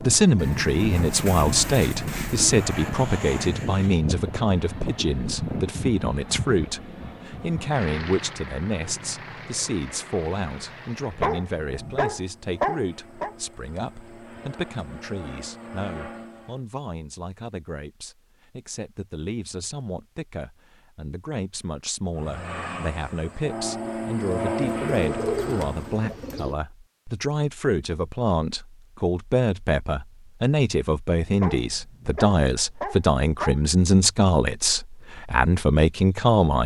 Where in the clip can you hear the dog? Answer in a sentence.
You can hear the dog from 11.2 to 13.3 s and from 31.4 to 33.6 s.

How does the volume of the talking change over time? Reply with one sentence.
The volume of the talking goes down, then up.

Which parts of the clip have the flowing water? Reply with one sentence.
You can't hear the flowing water here.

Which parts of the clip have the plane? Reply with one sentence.
You can hear the plane from 0.0 to 16.6 s and from 22.1 to 26.1 s.